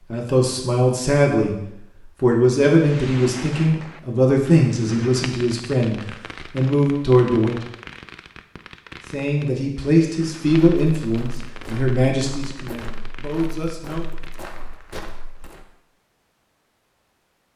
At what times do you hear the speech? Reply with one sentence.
The speech can be heard from 0.1 to 1.6 s, from 2.2 to 7.6 s and from 9.1 to 14.1 s.